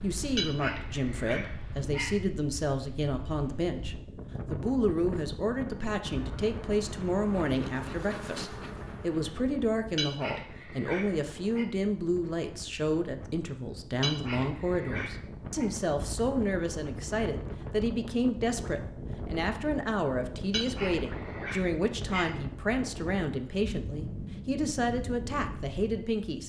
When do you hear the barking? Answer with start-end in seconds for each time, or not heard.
0.3-2.1, 9.9-11.7, 14.0-15.7, 20.5-22.3.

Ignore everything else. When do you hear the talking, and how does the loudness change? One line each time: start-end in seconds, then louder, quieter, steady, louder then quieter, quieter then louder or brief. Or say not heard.
0.0-26.4 steady.